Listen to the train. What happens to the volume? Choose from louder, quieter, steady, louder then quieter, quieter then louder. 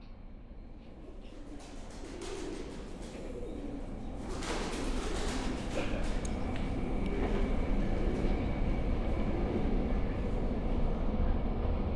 louder.